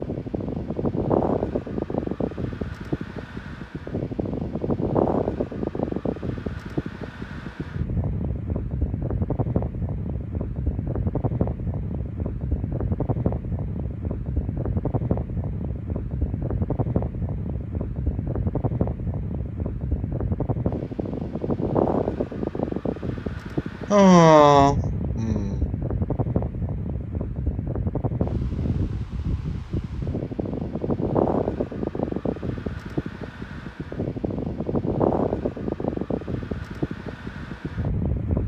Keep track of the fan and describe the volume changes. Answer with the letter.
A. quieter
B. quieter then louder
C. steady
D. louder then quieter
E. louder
C.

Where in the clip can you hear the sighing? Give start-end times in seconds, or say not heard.
23.9-25.6.